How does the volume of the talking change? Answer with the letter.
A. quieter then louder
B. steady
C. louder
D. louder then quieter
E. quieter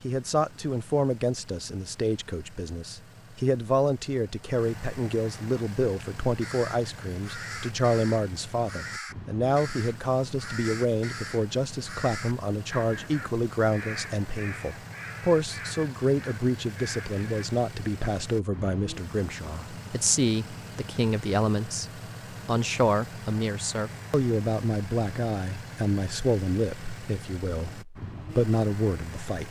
B.